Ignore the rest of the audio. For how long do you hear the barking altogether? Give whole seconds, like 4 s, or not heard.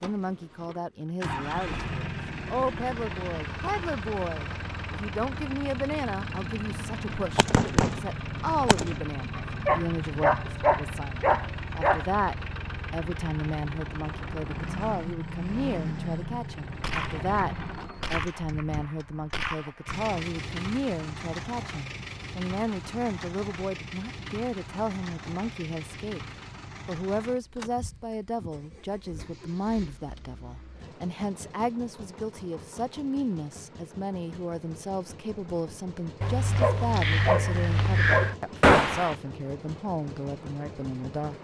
5 s.